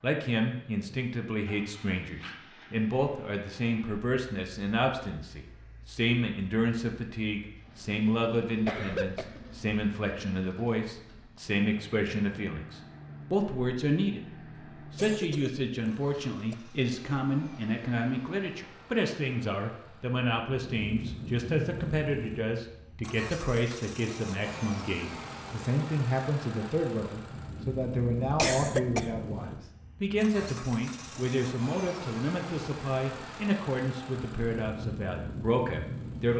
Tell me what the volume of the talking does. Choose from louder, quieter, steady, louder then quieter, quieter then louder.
steady.